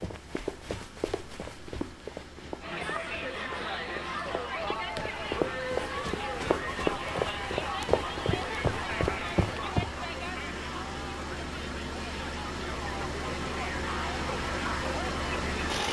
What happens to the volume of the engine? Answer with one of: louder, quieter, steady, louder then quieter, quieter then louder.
louder.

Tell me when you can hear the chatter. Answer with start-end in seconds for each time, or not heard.
2.6-15.8.